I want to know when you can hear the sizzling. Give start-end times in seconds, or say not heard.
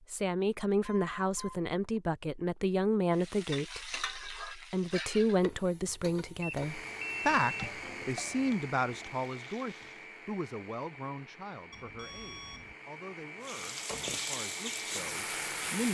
3.1-10.2, 13.4-15.8.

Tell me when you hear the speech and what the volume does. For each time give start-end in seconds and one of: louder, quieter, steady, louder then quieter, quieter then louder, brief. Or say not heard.
0.1-15.8 quieter.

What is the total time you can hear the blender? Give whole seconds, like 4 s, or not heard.
9 s.